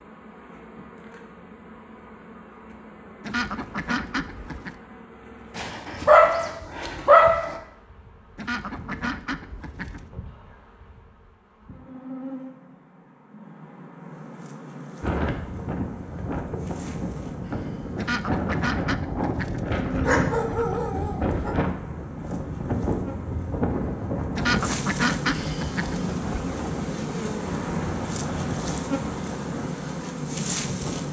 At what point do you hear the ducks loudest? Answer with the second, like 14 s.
25 s.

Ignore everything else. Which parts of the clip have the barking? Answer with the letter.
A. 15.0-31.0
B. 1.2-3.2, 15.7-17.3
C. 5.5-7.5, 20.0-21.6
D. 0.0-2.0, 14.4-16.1
C.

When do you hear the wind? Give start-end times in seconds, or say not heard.
15.0-31.0.